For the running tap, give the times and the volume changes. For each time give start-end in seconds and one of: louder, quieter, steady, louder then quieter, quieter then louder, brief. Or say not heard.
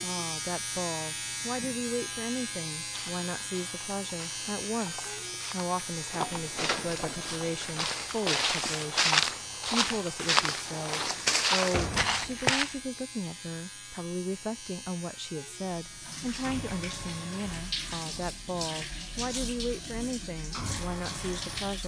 15.7-21.8 steady.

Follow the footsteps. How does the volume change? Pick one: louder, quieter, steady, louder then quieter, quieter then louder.
louder.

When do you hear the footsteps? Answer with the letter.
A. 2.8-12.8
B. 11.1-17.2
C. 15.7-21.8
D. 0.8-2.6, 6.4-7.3
A.